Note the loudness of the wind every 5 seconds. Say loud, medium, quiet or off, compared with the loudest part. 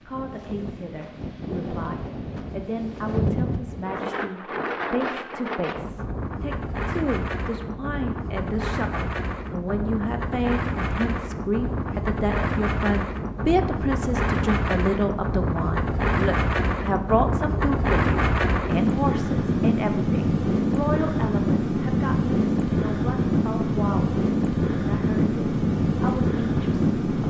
medium, medium, medium, loud, loud, loud.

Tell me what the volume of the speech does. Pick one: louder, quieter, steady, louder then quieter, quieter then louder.
louder then quieter.